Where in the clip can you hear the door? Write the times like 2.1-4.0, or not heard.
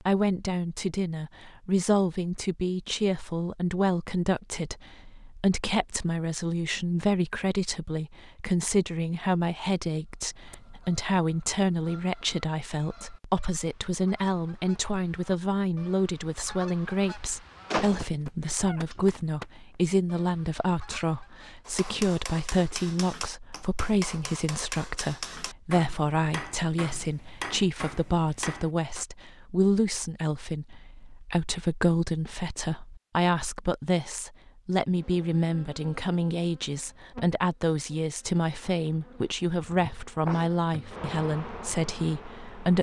17.7-19.1.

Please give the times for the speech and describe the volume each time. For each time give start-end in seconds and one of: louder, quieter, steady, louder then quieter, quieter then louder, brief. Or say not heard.
0.0-42.7 steady.